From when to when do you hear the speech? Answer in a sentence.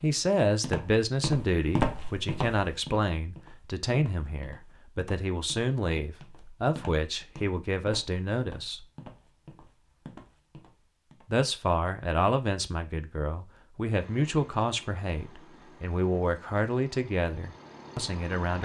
The speech can be heard from 0.0 to 8.8 s and from 11.3 to 18.6 s.